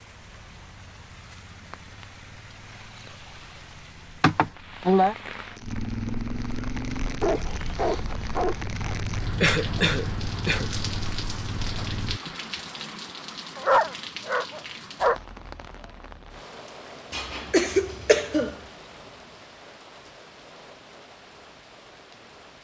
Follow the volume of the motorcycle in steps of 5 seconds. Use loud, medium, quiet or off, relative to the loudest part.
quiet, loud, loud, off, off.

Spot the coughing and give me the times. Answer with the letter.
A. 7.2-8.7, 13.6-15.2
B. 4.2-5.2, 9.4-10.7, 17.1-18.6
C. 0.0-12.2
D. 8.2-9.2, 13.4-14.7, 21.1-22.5
B.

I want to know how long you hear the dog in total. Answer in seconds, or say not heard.
3 s.